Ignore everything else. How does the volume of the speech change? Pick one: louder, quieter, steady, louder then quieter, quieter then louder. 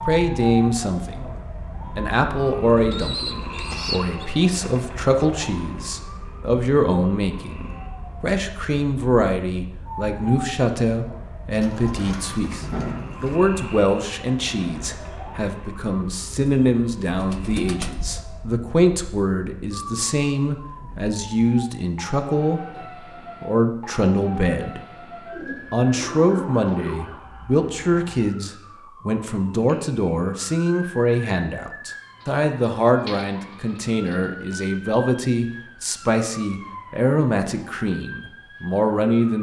steady.